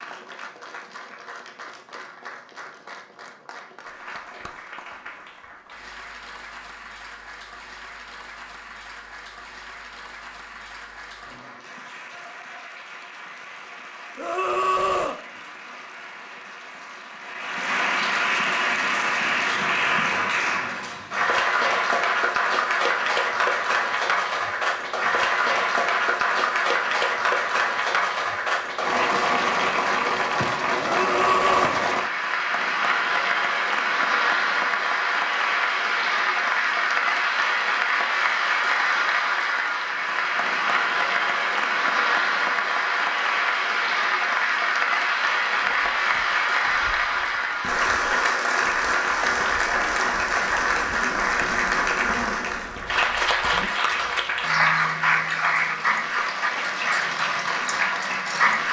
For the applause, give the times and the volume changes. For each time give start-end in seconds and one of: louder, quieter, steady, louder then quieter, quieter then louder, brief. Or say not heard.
0.0-58.6 louder.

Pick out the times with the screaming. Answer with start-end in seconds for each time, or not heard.
14.2-15.2, 30.8-31.8.